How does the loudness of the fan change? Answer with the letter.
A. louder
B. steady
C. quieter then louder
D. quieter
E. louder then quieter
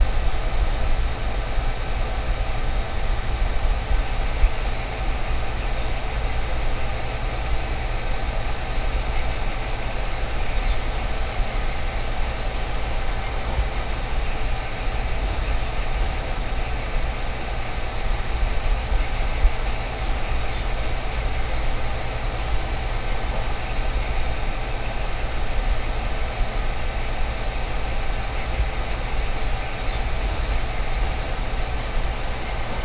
B.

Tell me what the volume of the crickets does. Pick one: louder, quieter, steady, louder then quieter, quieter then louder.
steady.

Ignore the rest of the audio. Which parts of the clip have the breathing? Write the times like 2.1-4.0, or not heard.
not heard.